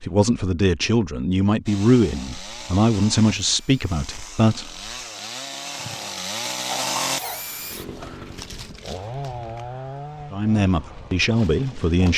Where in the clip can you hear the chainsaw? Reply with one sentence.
You can hear the chainsaw from 1.6 to 12.1 s.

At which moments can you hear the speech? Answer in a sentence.
You can hear the speech from 0.0 to 4.8 s and from 10.3 to 12.1 s.